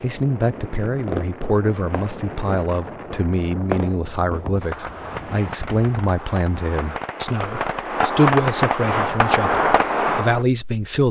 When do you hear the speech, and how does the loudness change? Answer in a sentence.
The speech can be heard from 0.0 to 11.0 s, at a steady volume.